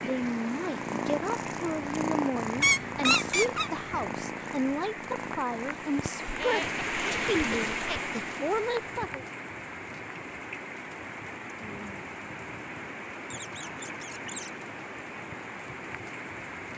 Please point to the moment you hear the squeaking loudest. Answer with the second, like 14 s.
3 s.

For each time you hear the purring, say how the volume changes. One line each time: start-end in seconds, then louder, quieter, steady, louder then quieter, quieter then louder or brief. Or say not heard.
0.0-6.3 quieter.